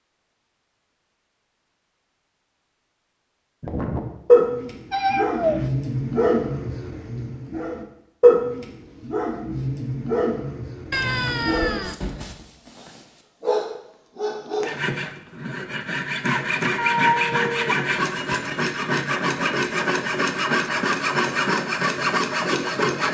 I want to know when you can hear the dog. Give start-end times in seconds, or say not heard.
3.6-14.7.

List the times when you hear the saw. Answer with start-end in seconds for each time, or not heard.
14.6-23.1.